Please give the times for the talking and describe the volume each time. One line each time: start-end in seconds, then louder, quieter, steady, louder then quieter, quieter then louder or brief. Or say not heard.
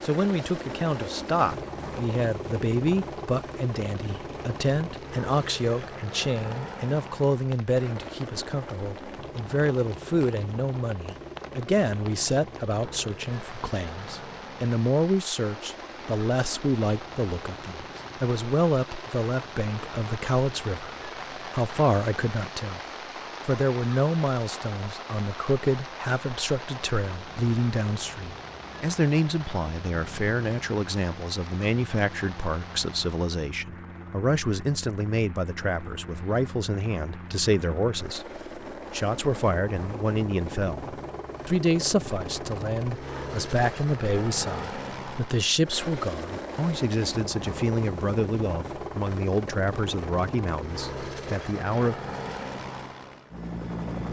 0.0-22.8 steady
23.4-52.0 steady.